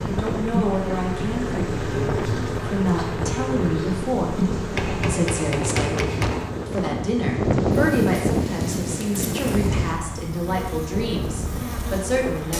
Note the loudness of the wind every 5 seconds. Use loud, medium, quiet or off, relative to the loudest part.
medium, loud, medium.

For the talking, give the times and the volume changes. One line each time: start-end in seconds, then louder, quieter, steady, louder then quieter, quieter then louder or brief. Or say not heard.
0.0-12.5 steady.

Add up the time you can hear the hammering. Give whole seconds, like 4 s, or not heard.
2 s.